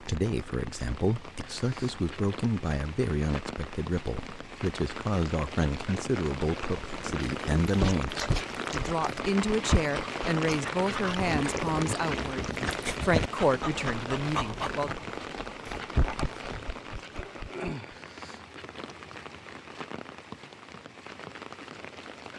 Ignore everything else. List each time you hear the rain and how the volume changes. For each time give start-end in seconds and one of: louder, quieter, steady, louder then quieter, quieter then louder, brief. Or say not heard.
0.0-22.3 louder then quieter.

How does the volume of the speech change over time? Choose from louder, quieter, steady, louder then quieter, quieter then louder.
steady.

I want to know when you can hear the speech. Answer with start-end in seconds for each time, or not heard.
0.0-14.9.